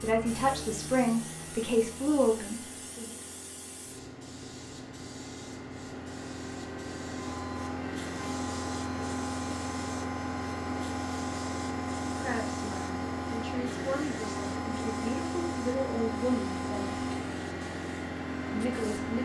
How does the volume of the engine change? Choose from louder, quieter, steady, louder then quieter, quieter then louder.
louder.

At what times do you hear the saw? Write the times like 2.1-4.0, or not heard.
not heard.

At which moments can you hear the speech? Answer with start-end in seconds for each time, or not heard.
0.0-3.1, 12.1-17.1, 18.5-19.2.